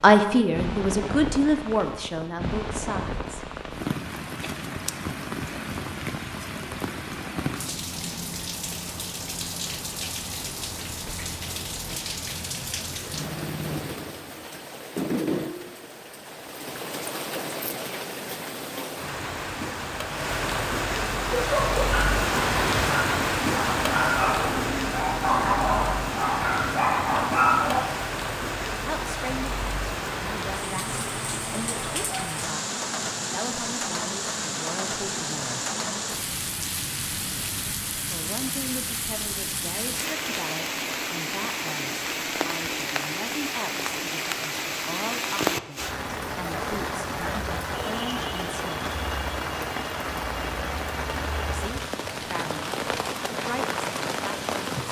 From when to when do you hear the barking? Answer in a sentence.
You can hear the barking from 21.4 to 27.9 s.